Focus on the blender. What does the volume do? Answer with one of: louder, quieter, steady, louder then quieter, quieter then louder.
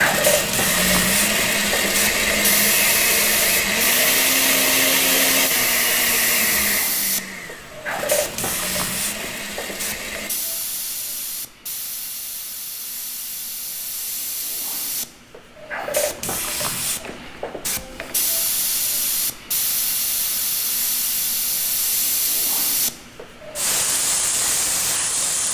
quieter.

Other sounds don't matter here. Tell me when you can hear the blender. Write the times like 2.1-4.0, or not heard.
0.0-10.3.